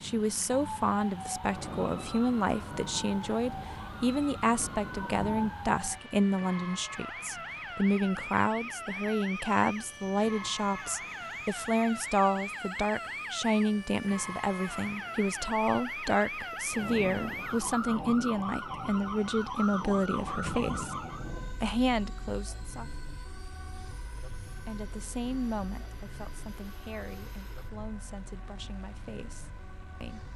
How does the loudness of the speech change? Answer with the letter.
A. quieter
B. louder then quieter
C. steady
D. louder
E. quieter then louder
A.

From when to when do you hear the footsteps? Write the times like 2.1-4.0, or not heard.
not heard.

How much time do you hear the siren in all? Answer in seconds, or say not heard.
30 s.